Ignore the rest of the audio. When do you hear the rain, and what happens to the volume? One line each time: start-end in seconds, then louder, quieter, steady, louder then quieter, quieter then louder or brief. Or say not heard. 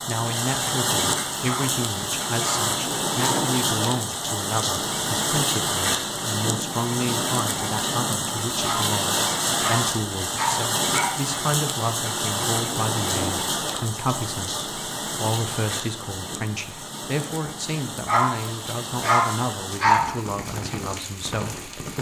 0.0-21.9 quieter.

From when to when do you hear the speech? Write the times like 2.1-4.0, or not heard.
0.1-21.9.